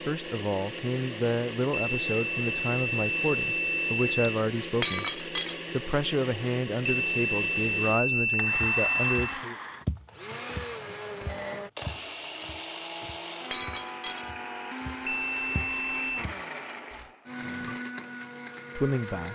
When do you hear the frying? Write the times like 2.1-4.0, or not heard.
not heard.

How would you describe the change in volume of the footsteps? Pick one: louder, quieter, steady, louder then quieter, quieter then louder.
quieter then louder.